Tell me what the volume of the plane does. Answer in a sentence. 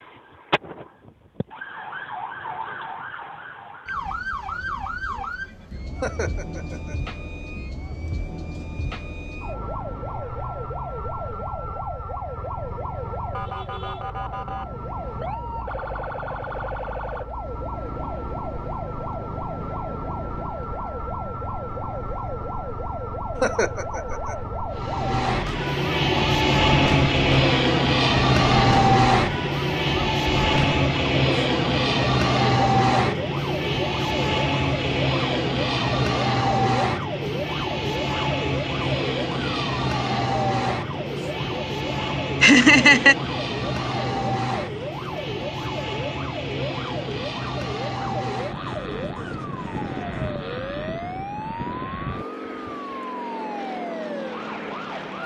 The volume of the plane goes down.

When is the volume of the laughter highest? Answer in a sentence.
The loudest moment of the laughter is at 43 seconds.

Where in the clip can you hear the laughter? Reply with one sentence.
The laughter can be heard from 6.0 to 7.0 s, from 23.4 to 24.4 s and from 42.4 to 43.1 s.